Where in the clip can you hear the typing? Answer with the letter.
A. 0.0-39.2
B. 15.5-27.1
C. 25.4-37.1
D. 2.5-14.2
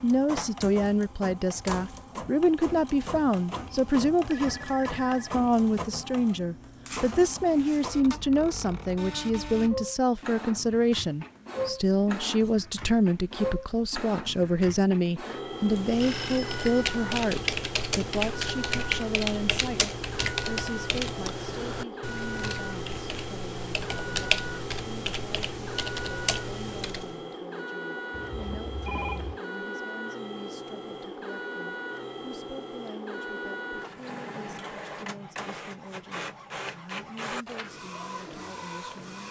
B.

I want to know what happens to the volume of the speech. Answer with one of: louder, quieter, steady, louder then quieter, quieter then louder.
quieter.